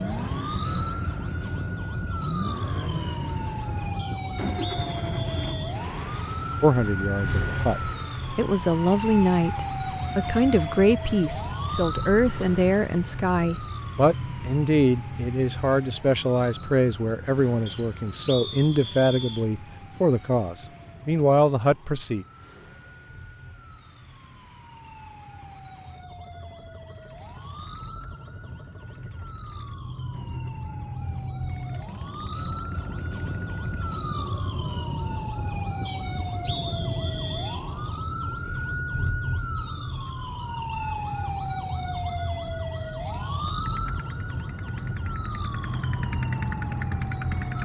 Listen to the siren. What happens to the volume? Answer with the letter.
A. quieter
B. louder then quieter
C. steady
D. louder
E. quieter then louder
E.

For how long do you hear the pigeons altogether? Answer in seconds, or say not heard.
not heard.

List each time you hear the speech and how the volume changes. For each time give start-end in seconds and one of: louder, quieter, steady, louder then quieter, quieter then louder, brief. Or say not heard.
6.6-22.2 steady.